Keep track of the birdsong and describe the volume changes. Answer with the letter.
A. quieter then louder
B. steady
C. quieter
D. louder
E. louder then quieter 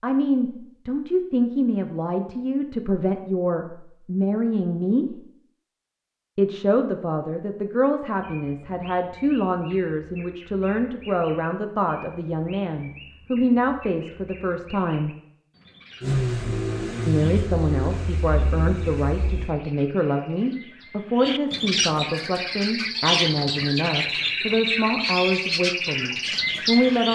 D.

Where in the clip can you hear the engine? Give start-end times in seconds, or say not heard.
16.0-19.6.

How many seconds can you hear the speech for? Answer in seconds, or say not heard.
24 s.